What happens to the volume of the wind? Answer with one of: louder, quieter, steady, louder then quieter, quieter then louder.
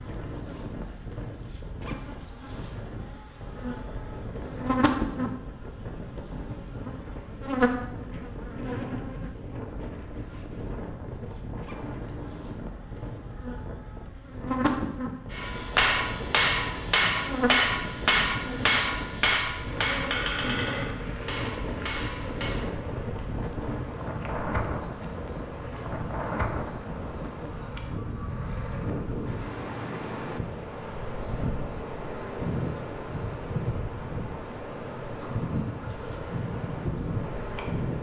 louder.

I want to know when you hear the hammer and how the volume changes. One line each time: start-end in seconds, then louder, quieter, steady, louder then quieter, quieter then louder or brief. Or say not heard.
15.3-22.6 quieter.